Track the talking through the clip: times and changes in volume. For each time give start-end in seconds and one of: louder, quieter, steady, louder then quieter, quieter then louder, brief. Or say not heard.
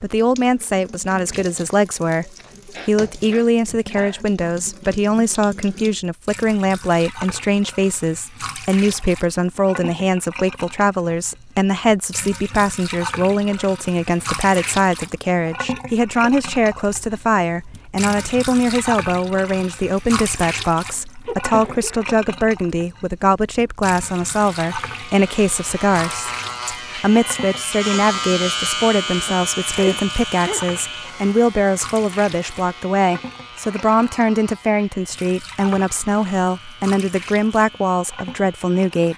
0.0-39.1 steady.